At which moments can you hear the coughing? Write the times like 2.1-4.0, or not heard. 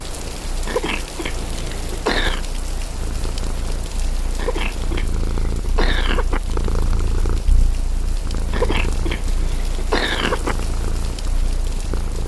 0.7-2.4, 4.3-6.4, 8.5-10.6.